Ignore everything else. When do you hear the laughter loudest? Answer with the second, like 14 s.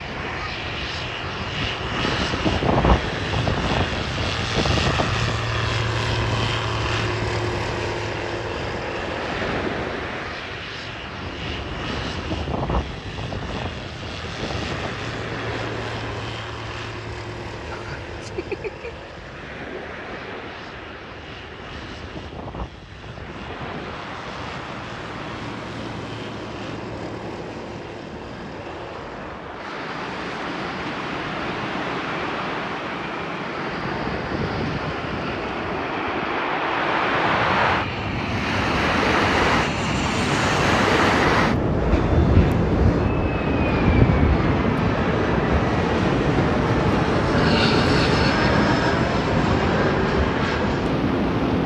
48 s.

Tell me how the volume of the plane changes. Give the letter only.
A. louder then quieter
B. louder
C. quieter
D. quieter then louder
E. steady
D.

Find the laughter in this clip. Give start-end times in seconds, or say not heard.
17.7-18.9, 47.3-48.5.